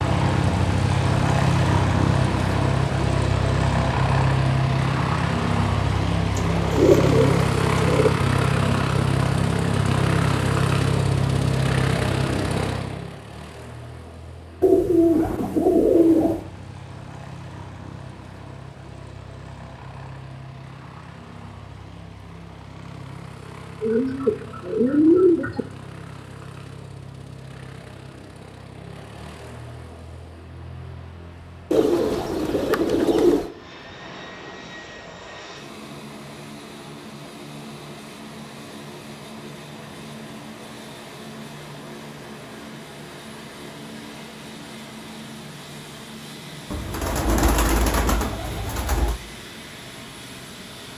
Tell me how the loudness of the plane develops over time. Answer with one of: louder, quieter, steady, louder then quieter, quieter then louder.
quieter.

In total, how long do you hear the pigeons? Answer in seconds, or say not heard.
10 s.